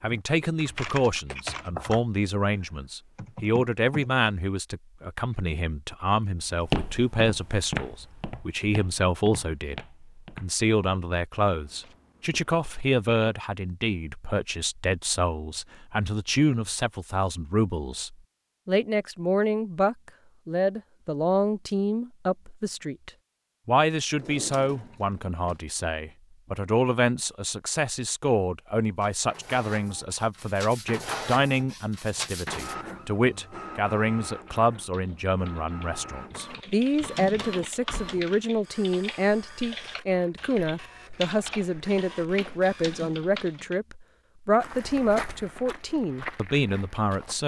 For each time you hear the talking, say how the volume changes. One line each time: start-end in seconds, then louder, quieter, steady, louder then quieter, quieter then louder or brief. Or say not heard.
0.0-47.4 steady.